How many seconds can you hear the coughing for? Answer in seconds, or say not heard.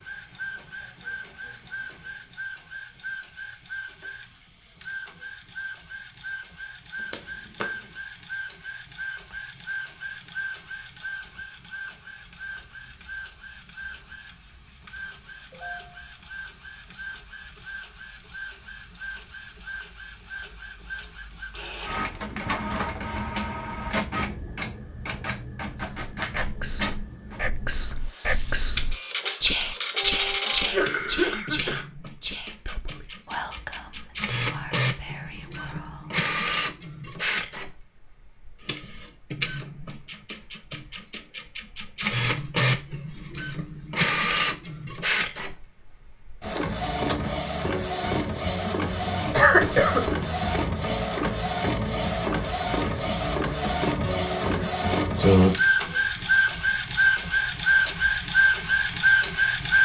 3 s.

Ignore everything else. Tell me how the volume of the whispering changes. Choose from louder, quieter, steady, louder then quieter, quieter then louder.
louder then quieter.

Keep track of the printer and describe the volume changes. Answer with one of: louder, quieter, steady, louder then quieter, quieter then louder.
louder.